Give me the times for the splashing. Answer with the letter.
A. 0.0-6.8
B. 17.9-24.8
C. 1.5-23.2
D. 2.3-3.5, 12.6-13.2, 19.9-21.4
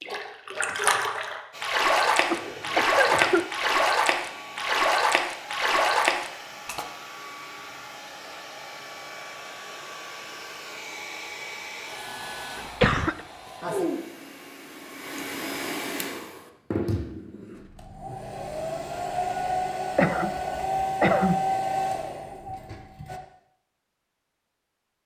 A.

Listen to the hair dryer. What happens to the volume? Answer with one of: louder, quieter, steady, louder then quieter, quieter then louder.
louder.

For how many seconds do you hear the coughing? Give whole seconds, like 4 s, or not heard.
3 s.